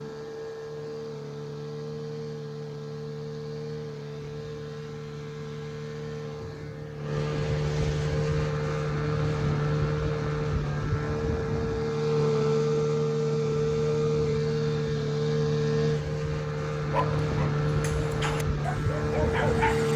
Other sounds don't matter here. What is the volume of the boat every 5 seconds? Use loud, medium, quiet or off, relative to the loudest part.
medium, loud, loud, loud.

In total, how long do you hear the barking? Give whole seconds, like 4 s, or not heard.
3 s.